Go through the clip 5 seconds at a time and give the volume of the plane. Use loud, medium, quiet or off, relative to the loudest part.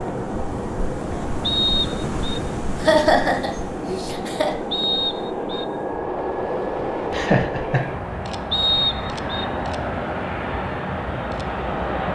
medium, loud, loud.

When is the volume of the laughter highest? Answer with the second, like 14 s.
3 s.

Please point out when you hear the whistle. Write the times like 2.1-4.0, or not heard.
1.4-2.4, 4.7-5.7, 8.5-9.4.